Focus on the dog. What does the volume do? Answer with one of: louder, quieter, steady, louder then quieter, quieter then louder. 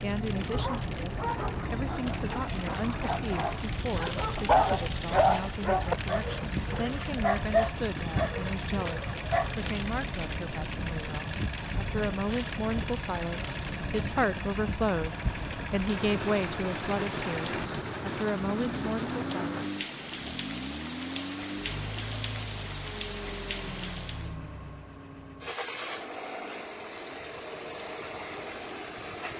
louder then quieter.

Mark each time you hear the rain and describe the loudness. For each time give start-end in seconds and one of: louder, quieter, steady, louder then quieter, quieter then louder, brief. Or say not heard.
0.0-24.4 steady.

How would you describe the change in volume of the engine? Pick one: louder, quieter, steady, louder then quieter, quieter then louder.
steady.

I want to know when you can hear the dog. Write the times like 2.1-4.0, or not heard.
0.5-9.7.